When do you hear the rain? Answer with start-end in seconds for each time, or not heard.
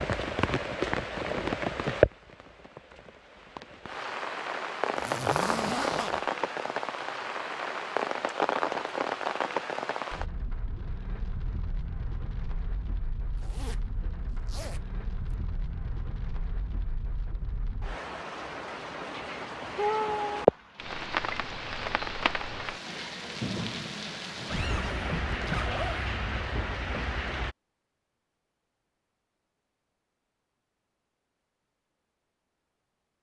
0.0-27.6.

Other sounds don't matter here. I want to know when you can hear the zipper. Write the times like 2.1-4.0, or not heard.
5.0-6.2, 13.3-15.3, 24.5-26.1.